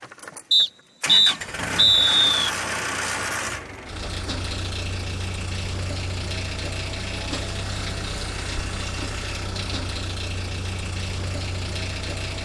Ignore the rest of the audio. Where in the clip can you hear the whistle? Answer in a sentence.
You can hear the whistle from 0.5 to 2.5 s.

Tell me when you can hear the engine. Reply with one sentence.
The engine can be heard from 0.0 to 12.4 s.